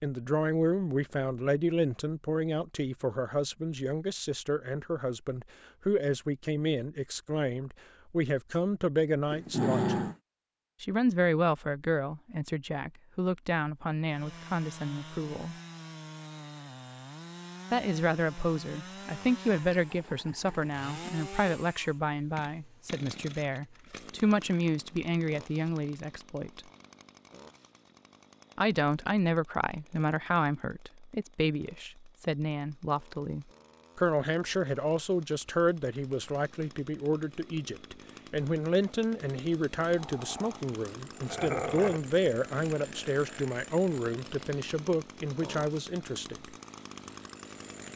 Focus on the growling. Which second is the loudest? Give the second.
10 s.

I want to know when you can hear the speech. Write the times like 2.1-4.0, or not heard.
0.0-10.0, 10.8-15.6, 17.7-26.6, 28.6-46.5.